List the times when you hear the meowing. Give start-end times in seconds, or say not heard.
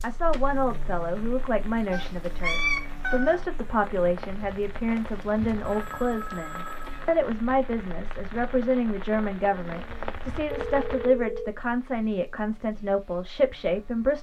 1.9-3.5.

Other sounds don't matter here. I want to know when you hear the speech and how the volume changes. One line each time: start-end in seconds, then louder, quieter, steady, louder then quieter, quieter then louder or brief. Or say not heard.
0.0-14.1 steady.